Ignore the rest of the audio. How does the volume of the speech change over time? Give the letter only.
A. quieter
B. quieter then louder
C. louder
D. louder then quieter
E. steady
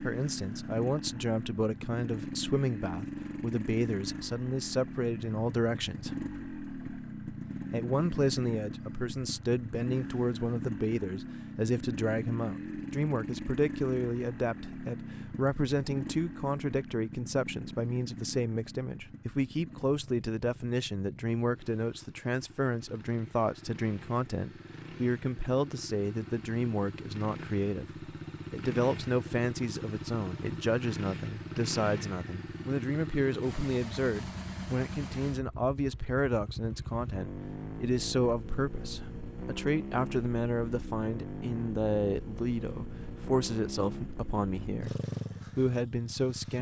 E.